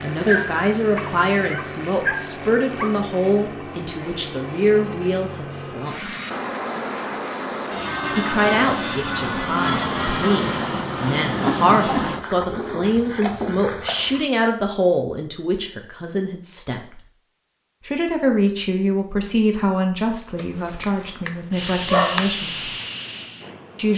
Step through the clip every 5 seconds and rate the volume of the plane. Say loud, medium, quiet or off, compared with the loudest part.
medium, loud, loud, off, medium.